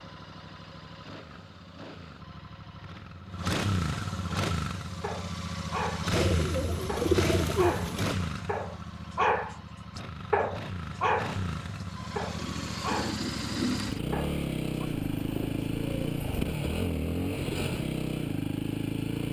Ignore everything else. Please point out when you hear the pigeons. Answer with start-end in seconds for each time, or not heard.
6.1-8.2, 15.0-16.4.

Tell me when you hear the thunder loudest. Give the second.
14 s.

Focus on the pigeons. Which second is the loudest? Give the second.
7 s.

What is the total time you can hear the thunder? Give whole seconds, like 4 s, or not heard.
2 s.